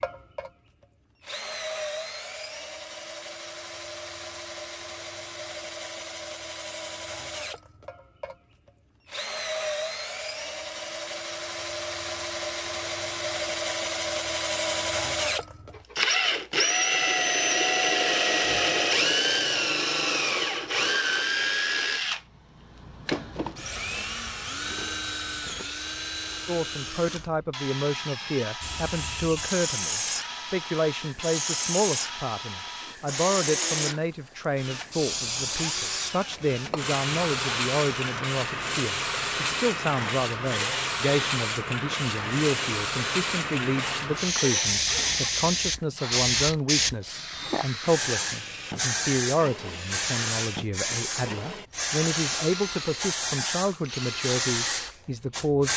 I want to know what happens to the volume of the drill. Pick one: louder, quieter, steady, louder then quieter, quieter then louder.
louder then quieter.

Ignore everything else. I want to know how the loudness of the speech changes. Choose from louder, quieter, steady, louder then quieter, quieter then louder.
steady.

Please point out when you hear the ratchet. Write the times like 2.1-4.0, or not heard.
not heard.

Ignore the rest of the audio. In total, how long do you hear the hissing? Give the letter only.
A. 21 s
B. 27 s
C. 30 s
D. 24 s
B.